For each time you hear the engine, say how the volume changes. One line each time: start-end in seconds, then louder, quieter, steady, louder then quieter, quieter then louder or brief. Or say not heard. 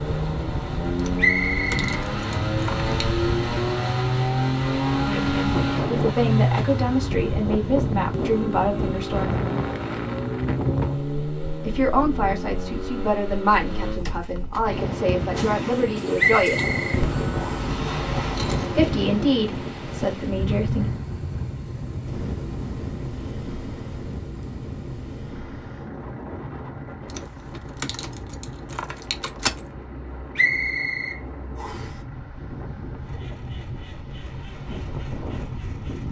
0.0-36.0 quieter.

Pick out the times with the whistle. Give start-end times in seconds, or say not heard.
1.1-1.9, 16.1-17.7, 30.4-31.9.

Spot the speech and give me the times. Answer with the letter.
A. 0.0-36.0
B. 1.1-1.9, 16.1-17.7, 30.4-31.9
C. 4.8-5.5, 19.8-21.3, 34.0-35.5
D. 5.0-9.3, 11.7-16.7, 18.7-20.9
D.